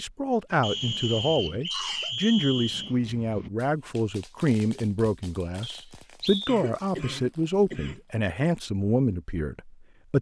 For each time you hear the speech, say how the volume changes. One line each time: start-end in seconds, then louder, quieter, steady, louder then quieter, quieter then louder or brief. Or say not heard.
0.0-10.1 steady.